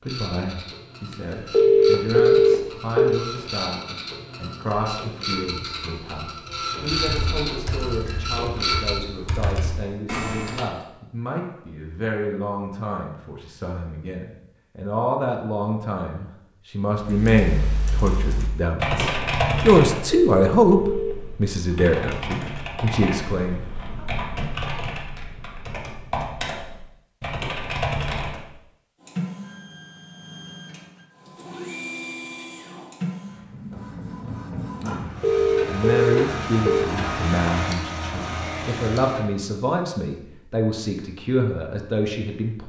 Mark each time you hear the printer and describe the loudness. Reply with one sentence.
You can hear the printer from 0.0 to 9.0 s, getting louder; and from 29.0 to 39.2 s, getting louder.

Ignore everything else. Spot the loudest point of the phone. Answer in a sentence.
The loudest moment of the phone is at 2 seconds.